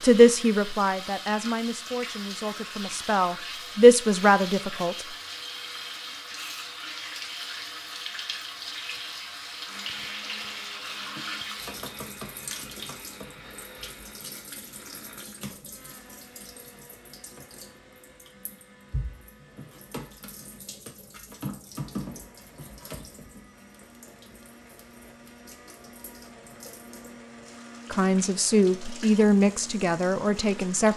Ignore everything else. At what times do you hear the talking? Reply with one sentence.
You can hear the talking from 0.0 to 5.0 s and from 27.9 to 30.9 s.